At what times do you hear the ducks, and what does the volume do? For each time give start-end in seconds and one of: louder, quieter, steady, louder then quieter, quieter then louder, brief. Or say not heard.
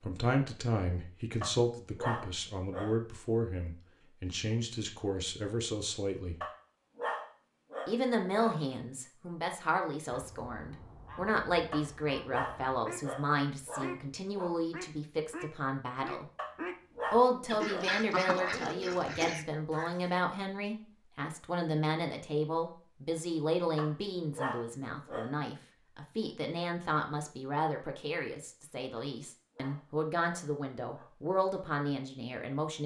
10.1-20.2 louder.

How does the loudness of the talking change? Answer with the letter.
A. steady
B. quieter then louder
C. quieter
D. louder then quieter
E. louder
A.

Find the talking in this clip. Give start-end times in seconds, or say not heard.
0.0-6.3, 7.8-16.2, 17.1-32.8.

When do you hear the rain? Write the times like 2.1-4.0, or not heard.
not heard.